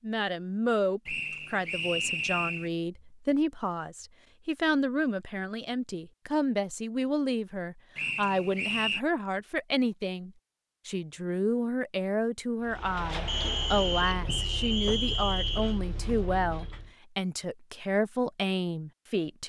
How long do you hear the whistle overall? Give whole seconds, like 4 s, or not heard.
5 s.